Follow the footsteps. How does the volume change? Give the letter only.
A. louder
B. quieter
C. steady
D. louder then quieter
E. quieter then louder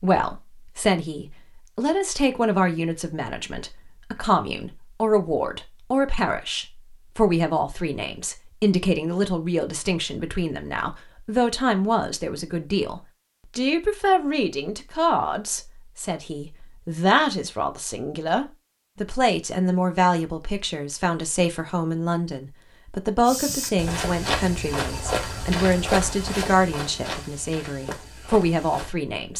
B.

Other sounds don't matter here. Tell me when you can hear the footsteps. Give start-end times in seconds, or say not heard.
23.2-28.9.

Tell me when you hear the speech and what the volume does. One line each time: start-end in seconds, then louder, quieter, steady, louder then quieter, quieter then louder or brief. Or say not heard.
0.0-29.3 steady.